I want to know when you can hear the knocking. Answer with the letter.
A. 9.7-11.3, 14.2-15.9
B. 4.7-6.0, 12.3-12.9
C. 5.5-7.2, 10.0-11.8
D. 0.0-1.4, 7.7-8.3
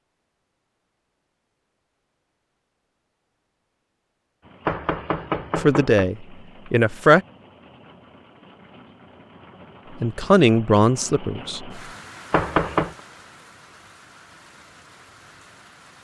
B.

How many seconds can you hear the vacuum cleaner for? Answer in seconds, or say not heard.
not heard.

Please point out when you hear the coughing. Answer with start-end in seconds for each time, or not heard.
not heard.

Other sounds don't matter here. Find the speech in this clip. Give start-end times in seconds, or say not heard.
5.5-7.2, 10.0-11.8.